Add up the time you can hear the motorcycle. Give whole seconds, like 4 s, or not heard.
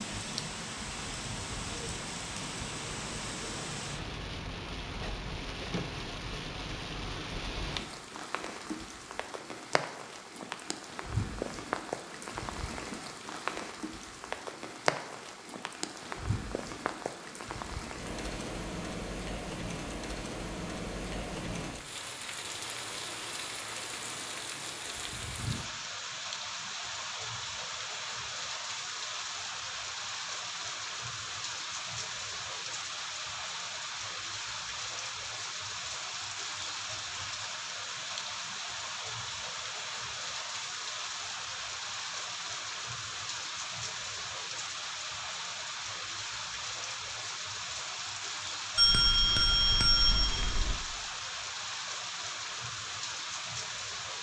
not heard.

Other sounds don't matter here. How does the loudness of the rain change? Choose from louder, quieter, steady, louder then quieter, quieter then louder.
steady.